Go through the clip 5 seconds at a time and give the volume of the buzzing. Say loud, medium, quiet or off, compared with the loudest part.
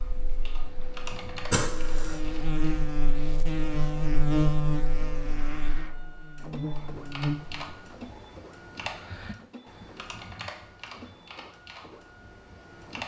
loud, medium, off.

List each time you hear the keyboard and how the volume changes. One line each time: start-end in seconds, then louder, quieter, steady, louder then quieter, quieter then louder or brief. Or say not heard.
0.0-2.6 brief
6.8-13.0 quieter.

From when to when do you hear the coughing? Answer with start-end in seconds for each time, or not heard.
1.5-2.2.